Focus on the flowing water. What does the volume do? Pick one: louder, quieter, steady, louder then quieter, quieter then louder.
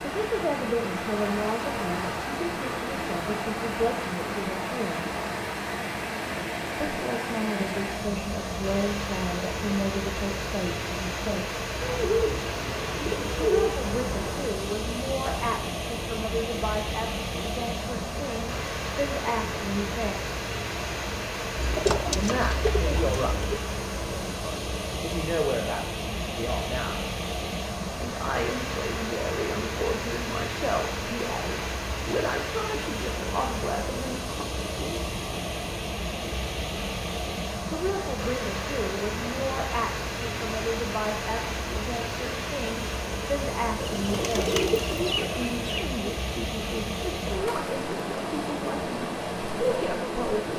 steady.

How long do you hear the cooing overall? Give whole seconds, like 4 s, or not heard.
7 s.